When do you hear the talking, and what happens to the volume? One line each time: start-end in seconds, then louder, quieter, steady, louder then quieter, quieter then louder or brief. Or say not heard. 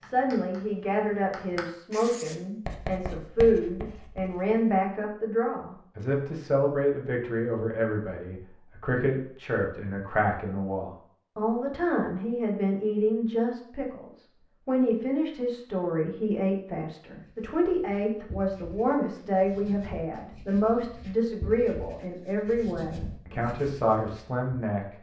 0.0-24.9 steady.